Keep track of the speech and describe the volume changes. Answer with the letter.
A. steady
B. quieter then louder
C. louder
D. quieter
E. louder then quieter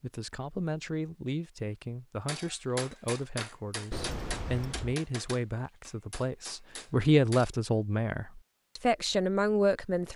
C.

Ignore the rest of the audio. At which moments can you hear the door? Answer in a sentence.
The door can be heard from 3.9 to 5.0 s.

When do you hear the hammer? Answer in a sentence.
You can hear the hammer from 2.2 to 7.5 s.